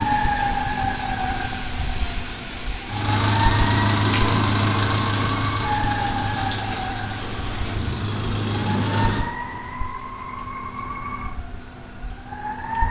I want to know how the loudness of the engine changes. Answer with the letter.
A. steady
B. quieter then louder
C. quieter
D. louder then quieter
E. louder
B.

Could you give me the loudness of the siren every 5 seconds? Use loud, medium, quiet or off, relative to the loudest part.
loud, loud, medium.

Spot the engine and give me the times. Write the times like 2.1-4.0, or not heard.
2.9-9.3.